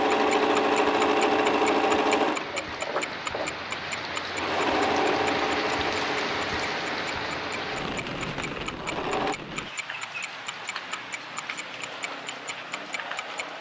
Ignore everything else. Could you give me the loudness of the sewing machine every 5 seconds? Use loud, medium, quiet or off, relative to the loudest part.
loud, medium, off.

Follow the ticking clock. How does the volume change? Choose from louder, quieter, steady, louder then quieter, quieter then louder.
quieter.